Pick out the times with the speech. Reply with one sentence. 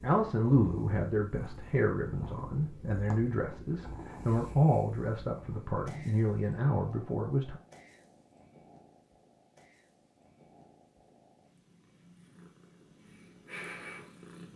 You can hear the speech from 0.0 to 7.6 s.